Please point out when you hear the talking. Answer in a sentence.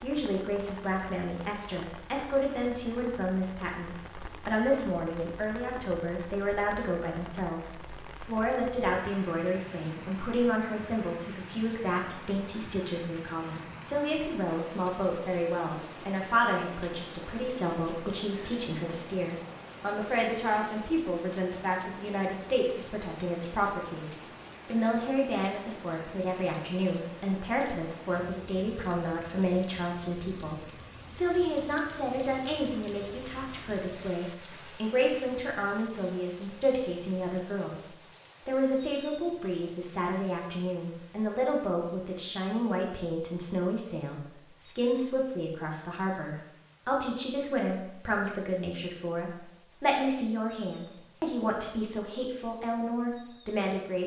You can hear the talking from 0.0 to 54.0 s.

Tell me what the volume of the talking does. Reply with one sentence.
The loudness of the talking stays about the same.